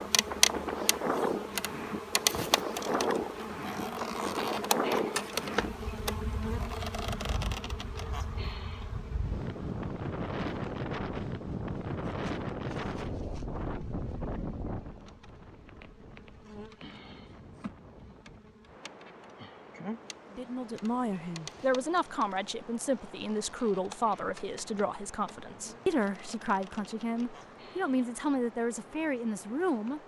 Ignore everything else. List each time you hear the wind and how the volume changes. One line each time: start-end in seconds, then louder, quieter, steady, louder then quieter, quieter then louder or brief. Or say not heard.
0.0-30.0 quieter.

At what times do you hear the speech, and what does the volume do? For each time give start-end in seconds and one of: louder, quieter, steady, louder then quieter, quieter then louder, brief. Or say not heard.
20.3-30.0 steady.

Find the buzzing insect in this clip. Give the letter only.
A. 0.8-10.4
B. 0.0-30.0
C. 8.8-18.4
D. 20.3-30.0
B.